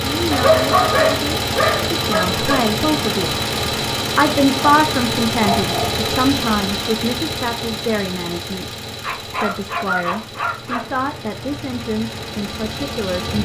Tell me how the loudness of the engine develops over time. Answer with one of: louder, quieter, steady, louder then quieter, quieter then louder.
quieter.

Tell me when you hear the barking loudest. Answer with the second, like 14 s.
1 s.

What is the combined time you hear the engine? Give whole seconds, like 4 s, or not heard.
13 s.